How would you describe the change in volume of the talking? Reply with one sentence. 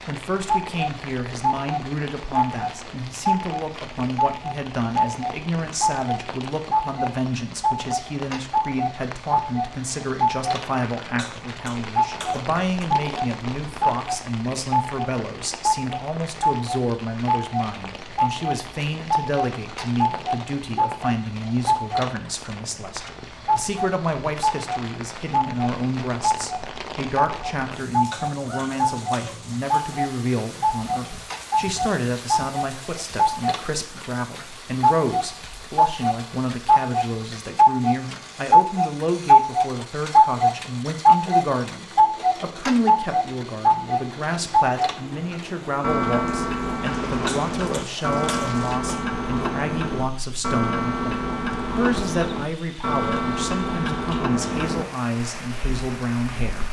The volume of the talking stays about the same.